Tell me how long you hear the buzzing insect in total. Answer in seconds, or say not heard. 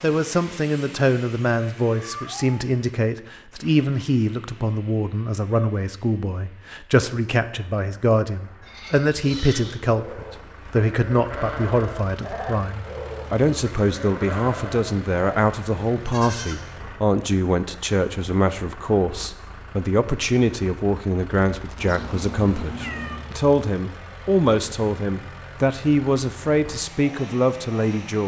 not heard.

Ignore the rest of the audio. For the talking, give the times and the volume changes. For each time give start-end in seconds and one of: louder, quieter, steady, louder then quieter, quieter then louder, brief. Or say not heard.
0.0-28.2 steady.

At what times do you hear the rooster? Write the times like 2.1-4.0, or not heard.
not heard.